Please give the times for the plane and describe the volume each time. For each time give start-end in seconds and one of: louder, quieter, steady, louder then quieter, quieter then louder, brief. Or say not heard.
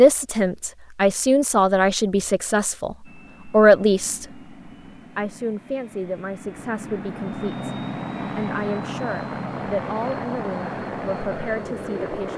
3.0-12.3 louder.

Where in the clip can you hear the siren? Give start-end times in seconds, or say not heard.
not heard.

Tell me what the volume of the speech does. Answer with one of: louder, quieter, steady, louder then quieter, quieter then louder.
quieter.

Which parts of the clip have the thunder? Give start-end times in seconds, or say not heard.
not heard.